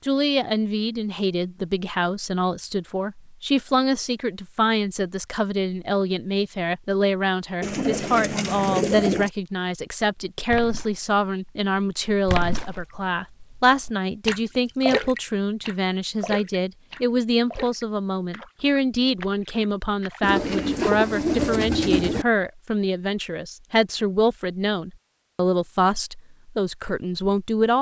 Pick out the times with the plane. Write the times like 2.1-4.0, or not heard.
not heard.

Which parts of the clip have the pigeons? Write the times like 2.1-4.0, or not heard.
7.6-9.3, 20.2-22.2.